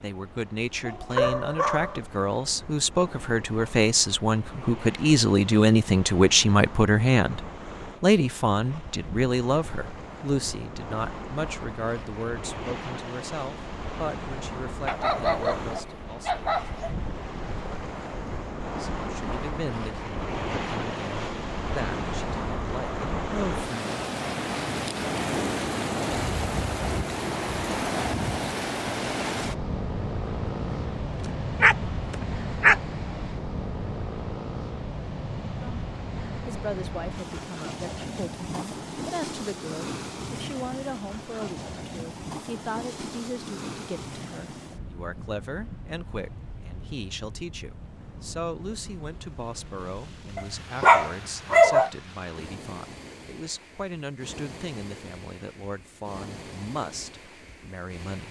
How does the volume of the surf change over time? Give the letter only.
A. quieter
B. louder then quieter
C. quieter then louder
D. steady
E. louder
B.